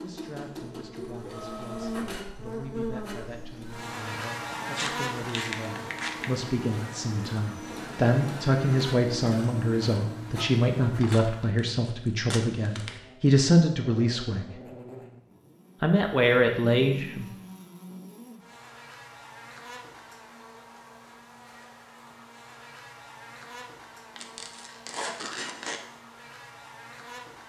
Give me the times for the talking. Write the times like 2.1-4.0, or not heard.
0.0-14.5, 15.8-17.2.